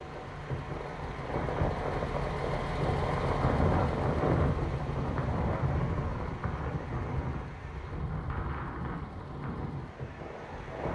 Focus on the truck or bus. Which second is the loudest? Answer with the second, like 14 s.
3 s.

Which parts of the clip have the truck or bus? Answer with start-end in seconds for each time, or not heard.
0.0-10.9.